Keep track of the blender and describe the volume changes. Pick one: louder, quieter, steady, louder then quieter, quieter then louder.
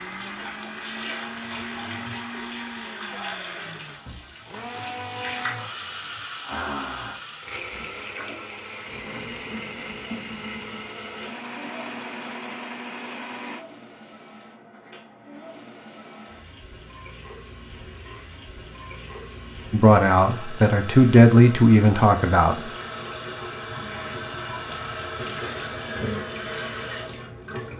steady.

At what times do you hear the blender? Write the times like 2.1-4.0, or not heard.
0.0-13.7.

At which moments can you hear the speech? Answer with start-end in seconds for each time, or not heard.
19.7-22.7.